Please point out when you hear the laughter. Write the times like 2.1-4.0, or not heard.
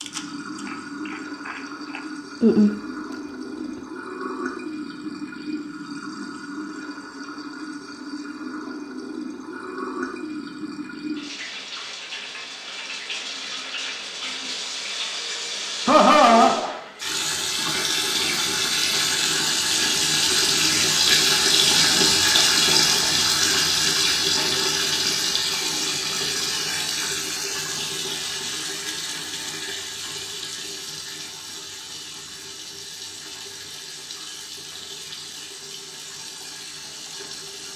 15.8-16.6.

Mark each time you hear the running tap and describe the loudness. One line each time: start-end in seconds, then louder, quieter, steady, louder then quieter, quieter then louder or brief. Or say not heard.
0.0-37.7 louder then quieter.